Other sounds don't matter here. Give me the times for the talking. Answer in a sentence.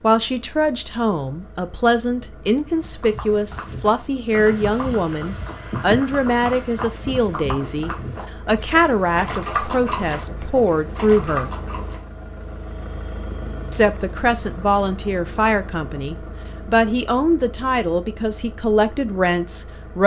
You can hear the talking from 0.0 to 11.5 s and from 13.7 to 20.0 s.